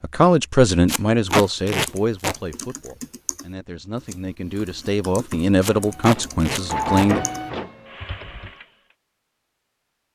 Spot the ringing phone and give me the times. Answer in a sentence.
The ringing phone can't be heard in this clip.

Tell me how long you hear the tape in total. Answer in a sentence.
You can hear the tape for 3 seconds altogether.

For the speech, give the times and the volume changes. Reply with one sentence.
The speech can be heard from 0.0 to 7.2 s, getting quieter then louder.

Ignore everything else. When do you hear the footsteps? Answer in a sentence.
You can't hear the footsteps here.